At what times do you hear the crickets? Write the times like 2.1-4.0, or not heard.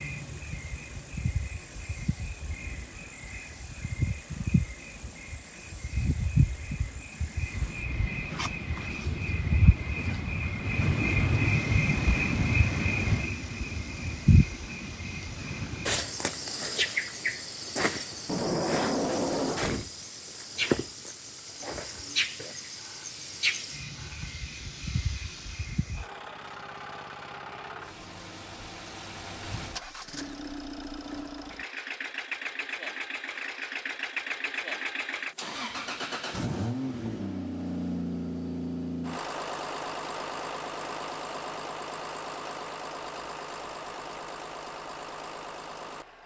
0.0-26.1.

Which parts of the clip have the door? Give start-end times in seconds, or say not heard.
18.2-19.9.